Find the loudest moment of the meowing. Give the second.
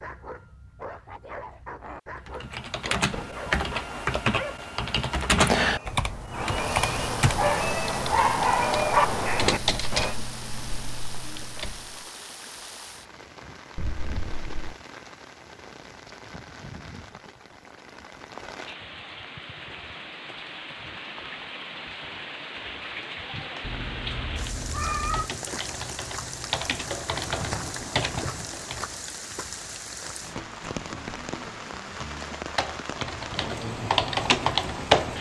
25 s.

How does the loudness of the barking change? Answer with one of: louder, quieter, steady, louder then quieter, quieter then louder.
louder.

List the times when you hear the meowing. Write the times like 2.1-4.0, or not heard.
13.8-14.8, 23.6-25.3.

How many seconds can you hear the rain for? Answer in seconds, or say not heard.
29 s.